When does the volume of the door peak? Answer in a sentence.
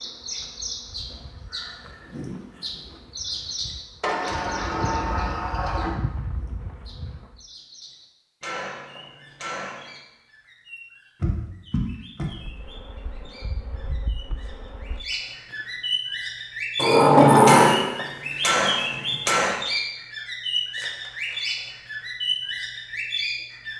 The volume of the door peaks at 17 seconds.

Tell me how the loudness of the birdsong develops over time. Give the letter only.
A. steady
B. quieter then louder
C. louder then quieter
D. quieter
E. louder
B.